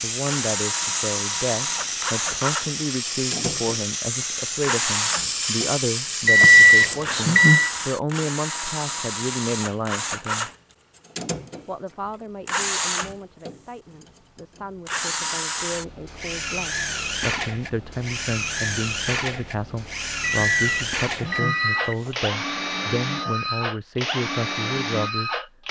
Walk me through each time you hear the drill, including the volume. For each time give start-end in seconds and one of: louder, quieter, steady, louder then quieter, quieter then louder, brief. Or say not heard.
0.2-25.6 steady.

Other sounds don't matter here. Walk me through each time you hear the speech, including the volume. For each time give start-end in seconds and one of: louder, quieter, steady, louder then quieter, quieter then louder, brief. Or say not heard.
0.0-10.5 steady
11.7-25.4 louder.